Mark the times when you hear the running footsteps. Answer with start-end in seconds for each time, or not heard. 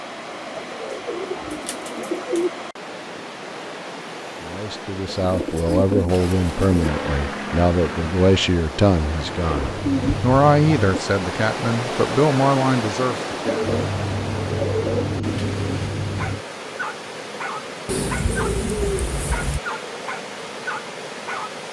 not heard.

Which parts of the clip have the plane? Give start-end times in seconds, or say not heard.
6.8-10.9, 13.6-16.4.